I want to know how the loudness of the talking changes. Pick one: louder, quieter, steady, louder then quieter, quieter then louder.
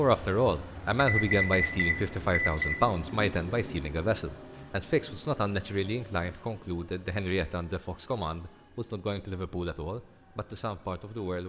quieter.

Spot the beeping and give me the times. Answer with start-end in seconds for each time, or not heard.
0.9-2.8.